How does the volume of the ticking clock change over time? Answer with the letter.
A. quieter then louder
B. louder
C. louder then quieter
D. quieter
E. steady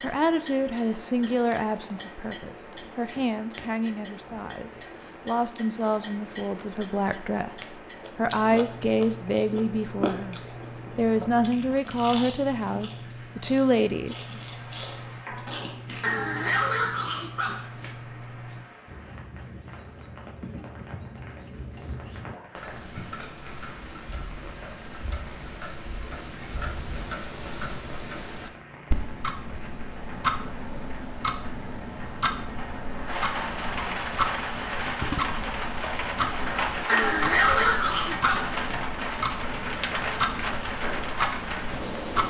B.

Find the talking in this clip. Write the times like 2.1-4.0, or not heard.
0.0-14.4.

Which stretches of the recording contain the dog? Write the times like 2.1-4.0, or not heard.
16.0-17.9, 36.9-38.8.